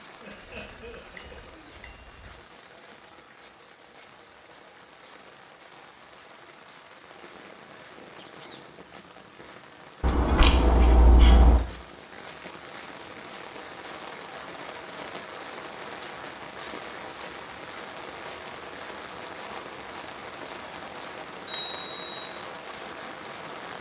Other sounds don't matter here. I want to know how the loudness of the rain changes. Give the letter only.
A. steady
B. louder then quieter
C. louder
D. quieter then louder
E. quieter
C.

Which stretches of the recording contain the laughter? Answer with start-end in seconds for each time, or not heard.
0.1-1.7.